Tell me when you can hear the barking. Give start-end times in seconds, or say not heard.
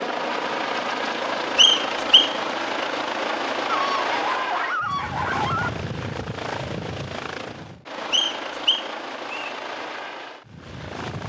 3.6-5.7.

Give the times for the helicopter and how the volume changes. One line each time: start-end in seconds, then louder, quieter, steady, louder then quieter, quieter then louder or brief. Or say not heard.
0.0-11.2 quieter.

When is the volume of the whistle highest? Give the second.
2 s.